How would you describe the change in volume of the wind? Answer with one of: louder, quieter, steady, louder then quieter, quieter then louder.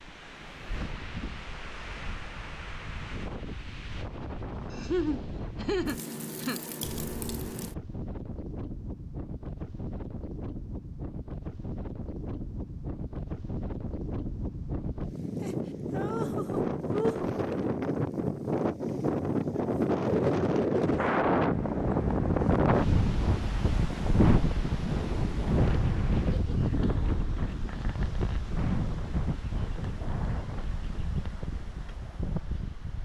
louder then quieter.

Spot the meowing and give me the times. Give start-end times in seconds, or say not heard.
6.8-7.6, 25.0-25.5.